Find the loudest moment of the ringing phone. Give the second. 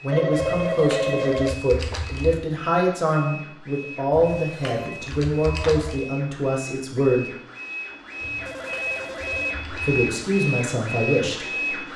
1 s.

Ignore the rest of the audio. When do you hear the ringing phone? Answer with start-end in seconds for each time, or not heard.
0.1-1.6, 4.6-5.9, 8.3-9.7.